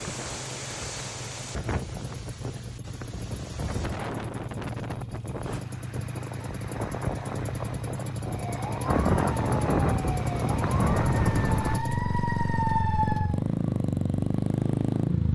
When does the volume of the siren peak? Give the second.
13 s.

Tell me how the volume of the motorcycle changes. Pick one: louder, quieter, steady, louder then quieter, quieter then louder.
louder.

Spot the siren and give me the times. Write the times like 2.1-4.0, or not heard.
8.2-13.4.